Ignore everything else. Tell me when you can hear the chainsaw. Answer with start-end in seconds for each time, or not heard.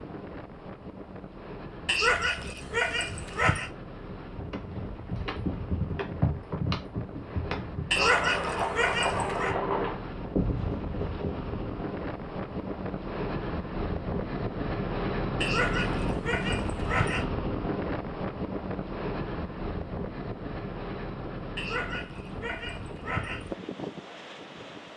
not heard.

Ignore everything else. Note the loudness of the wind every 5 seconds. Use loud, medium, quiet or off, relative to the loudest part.
medium, medium, loud, loud, medium.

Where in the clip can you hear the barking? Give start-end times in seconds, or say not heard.
1.9-3.7, 7.9-9.6, 15.4-17.2, 21.6-23.5.